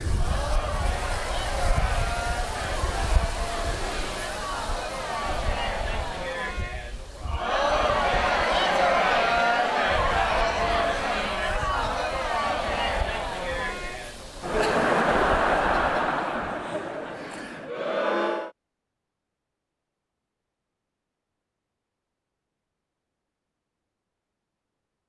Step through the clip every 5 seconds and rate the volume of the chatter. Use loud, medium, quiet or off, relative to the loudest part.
medium, loud, loud, loud, off.